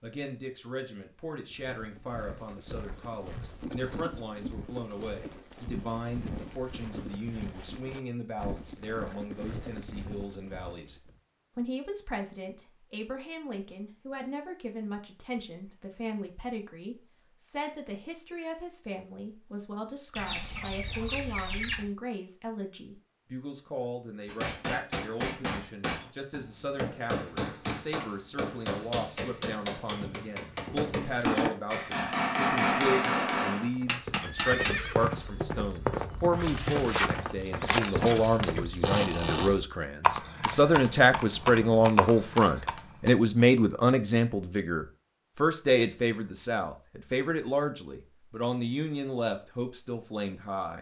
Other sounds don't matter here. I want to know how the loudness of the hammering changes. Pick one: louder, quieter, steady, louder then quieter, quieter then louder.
louder.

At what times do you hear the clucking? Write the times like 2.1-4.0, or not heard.
20.1-21.9.